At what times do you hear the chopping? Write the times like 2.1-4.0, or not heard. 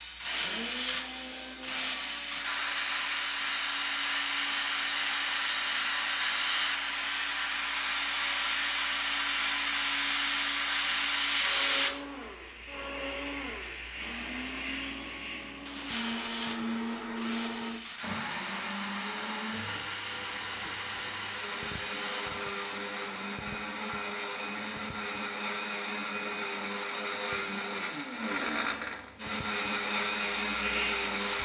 not heard.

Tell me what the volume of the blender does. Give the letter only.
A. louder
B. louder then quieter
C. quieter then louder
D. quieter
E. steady
A.